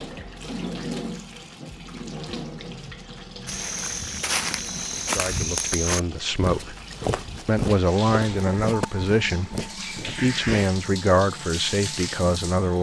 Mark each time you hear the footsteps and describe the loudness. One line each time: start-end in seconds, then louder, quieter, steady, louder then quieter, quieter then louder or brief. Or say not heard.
3.5-10.7 quieter.